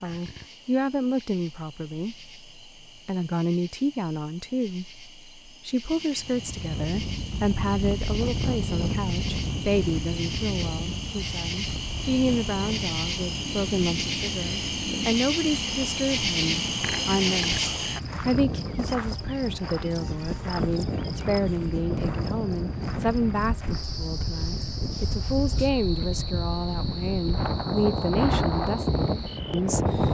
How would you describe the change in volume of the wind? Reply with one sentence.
The loudness of the wind goes down, then up.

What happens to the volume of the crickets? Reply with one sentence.
The volume of the crickets goes up, then down.